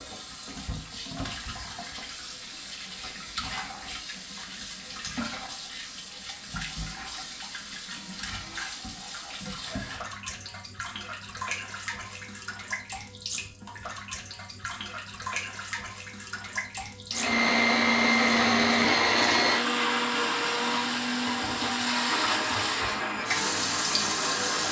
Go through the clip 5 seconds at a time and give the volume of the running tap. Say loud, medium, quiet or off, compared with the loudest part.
medium, medium, medium, medium, loud.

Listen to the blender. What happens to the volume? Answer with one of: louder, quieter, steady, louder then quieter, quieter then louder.
quieter.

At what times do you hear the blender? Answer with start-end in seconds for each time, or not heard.
17.1-24.6.